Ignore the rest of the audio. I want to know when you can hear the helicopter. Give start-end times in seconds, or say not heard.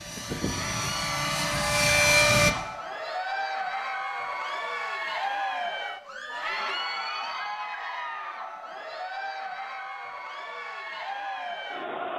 0.0-2.5.